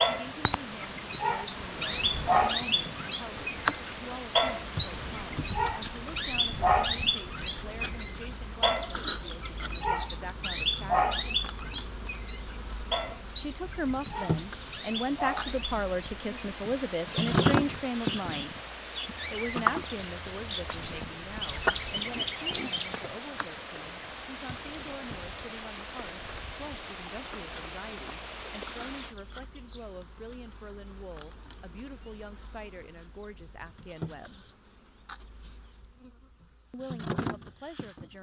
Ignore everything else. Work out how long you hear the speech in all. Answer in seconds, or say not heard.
33 s.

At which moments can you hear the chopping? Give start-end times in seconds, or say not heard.
not heard.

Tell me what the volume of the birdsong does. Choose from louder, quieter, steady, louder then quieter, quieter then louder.
quieter.